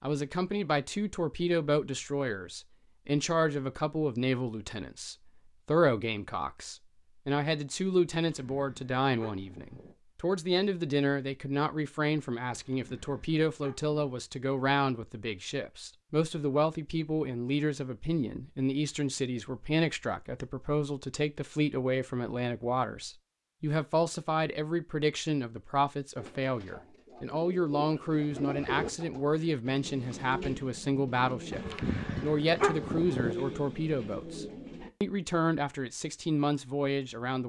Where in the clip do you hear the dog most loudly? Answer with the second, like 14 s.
33 s.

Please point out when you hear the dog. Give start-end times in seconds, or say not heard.
8.2-9.9, 12.5-14.2, 31.5-33.4.